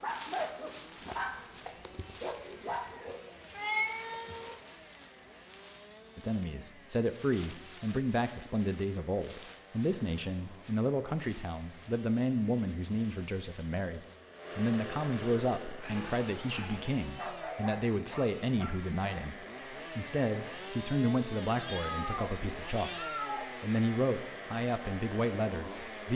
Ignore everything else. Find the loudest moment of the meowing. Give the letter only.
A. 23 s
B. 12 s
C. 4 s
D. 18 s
C.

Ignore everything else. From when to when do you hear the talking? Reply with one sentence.
You can hear the talking from 6.2 to 26.1 s.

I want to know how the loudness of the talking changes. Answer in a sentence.
The volume of the talking stays about the same.